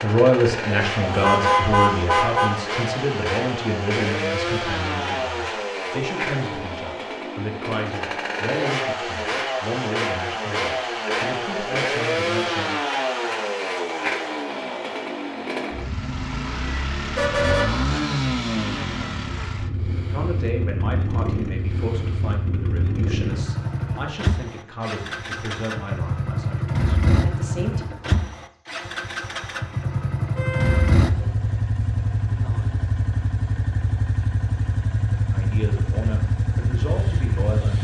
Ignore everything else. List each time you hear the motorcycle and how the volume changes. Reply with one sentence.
You can hear the motorcycle from 0.0 to 37.7 s, at a steady volume.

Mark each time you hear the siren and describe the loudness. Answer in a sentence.
You can't hear the siren here.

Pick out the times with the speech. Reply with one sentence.
The speech can be heard from 0.0 to 12.8 s, from 20.1 to 27.9 s and from 35.3 to 37.7 s.